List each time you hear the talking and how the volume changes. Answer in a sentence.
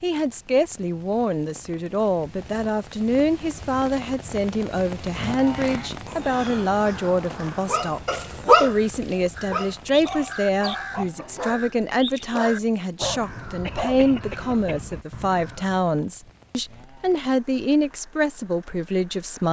The talking can be heard from 0.0 to 19.4 s, at a steady volume.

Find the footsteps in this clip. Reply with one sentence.
You can't hear the footsteps here.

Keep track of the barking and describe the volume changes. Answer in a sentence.
The volume of the barking goes down.